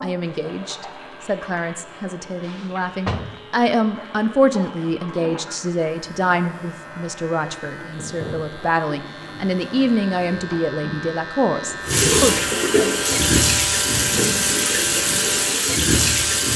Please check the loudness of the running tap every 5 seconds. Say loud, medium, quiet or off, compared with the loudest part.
quiet, quiet, loud, loud.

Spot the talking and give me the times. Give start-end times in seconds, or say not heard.
0.0-12.4.